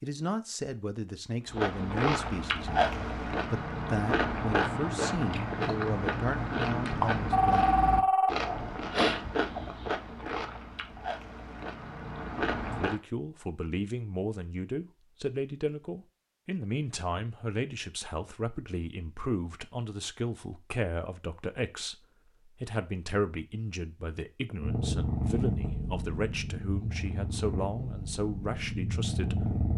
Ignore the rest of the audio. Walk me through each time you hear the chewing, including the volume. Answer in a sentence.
You can hear the chewing from 1.4 to 13.0 s, getting quieter.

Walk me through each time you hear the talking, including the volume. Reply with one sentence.
You can hear the talking from 0.0 to 7.7 s, at a steady volume; and from 12.8 to 29.6 s, at a steady volume.